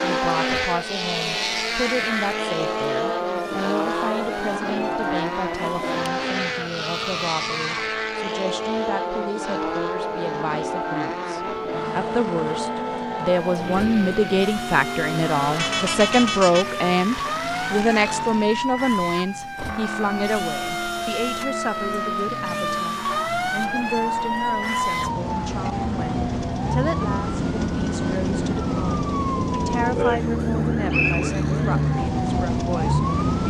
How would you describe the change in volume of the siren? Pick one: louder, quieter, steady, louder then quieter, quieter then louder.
louder.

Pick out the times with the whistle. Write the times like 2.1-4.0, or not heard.
30.9-31.4.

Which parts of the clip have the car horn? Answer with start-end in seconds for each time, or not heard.
15.6-16.8.